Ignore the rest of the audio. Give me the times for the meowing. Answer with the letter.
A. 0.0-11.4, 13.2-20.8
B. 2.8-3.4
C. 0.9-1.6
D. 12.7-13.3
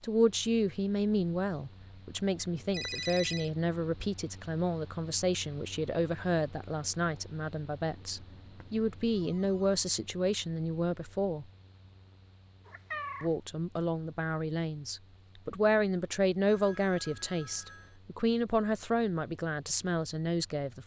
D.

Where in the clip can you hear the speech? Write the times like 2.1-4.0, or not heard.
0.0-11.4, 13.2-20.8.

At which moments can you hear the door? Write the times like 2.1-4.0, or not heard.
not heard.